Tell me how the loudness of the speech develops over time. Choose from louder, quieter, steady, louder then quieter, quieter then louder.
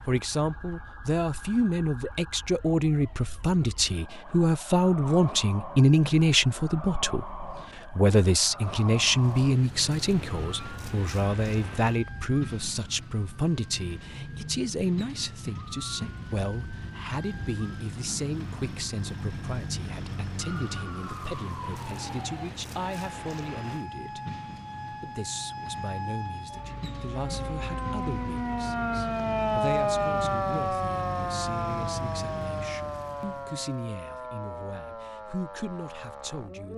quieter.